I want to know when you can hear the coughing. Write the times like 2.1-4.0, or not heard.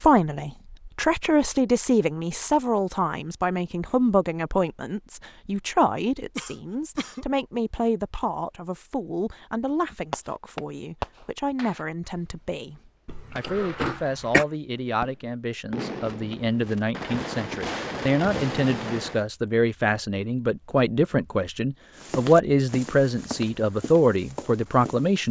6.3-7.2, 13.1-14.4.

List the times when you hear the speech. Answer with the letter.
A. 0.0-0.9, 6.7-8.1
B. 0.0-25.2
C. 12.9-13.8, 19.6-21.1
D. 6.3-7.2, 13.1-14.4
B.